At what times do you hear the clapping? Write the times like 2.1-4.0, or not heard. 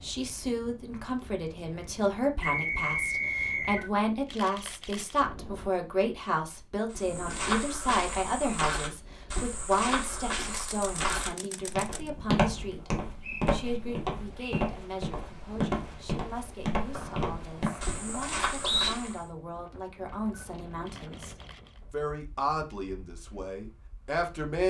not heard.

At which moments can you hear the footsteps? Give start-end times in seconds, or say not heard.
6.9-19.2.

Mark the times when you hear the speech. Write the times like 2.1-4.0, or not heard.
0.0-24.6.